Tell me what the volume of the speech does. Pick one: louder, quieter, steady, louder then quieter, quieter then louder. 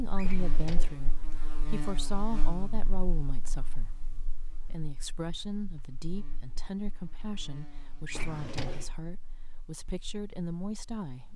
steady.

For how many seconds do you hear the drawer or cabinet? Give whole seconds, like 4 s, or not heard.
2 s.